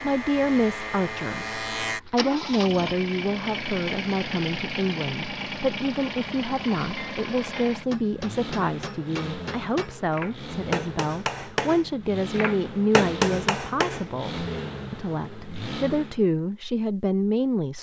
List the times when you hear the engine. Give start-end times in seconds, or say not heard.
0.0-16.2.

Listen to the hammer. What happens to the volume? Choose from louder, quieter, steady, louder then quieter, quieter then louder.
louder.